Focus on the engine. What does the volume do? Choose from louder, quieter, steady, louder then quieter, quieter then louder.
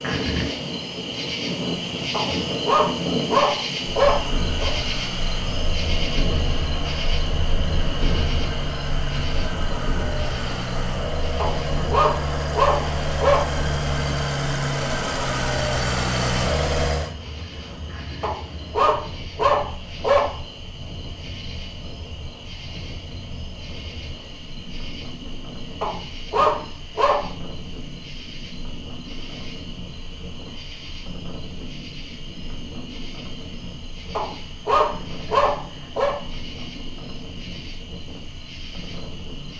louder.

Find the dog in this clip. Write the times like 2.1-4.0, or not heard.
2.1-4.7, 11.3-13.4, 18.2-20.3, 25.8-27.2, 34.1-36.1.